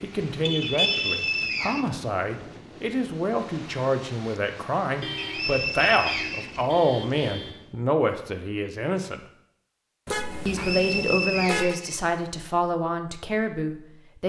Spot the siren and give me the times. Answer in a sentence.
You can't hear the siren here.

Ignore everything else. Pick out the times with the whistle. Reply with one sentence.
The whistle can be heard from 0.6 to 1.9 s, from 5.2 to 6.7 s and from 10.4 to 12.0 s.